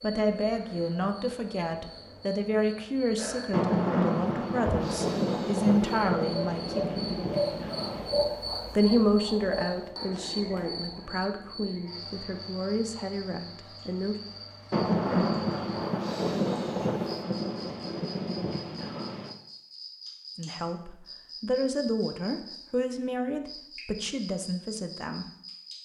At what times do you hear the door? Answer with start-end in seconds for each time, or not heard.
not heard.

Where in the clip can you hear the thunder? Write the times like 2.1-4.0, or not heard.
3.5-8.2, 14.7-19.4.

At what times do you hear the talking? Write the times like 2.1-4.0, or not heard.
0.0-7.1, 8.8-14.2, 20.4-25.2.